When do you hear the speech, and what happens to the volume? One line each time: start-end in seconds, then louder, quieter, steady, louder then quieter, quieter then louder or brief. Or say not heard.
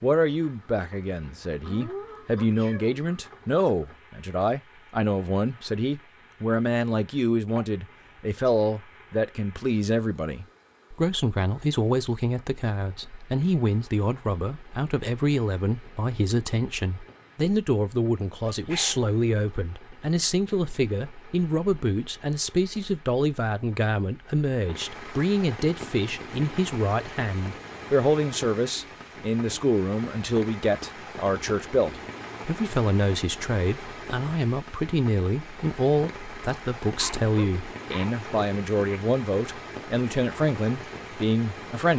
0.0-41.9 steady.